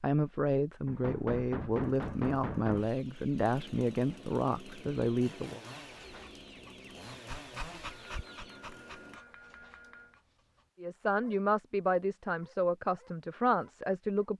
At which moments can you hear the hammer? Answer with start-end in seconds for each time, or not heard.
0.8-2.9, 7.8-10.2.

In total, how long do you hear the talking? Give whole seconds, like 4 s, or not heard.
9 s.